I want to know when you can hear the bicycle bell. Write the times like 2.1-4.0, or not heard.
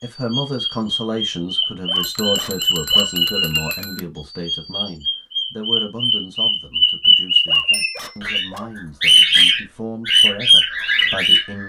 2.0-4.0, 7.7-8.2.